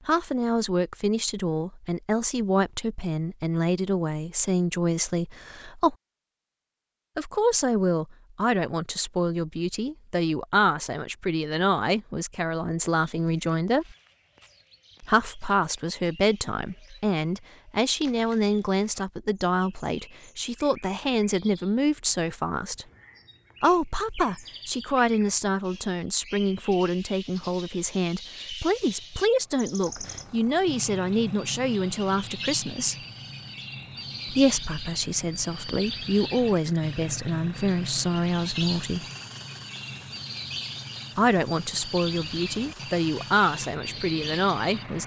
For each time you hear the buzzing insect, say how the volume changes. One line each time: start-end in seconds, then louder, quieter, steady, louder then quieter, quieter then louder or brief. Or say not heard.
not heard.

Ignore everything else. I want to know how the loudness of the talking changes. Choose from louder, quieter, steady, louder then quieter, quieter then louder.
steady.